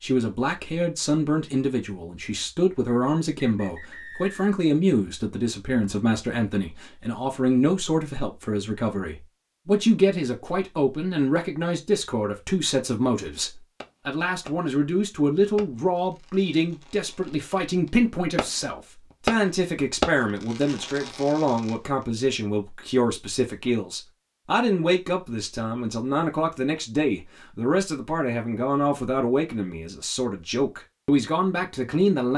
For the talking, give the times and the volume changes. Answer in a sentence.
You can hear the talking from 0.0 to 32.3 s, at a steady volume.